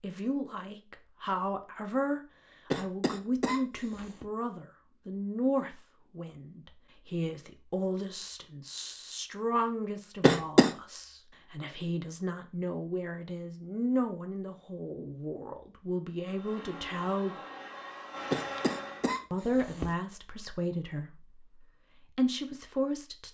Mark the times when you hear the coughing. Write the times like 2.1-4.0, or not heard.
2.7-4.2, 10.2-10.7, 18.3-19.9.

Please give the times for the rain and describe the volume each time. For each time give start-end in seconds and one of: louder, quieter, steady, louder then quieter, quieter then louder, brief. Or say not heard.
not heard.